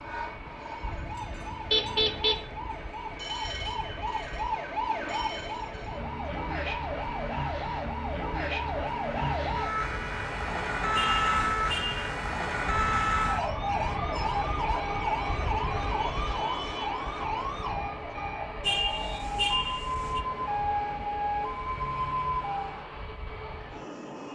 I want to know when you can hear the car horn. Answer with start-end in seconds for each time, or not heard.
1.7-2.4, 10.9-12.0, 18.6-20.2.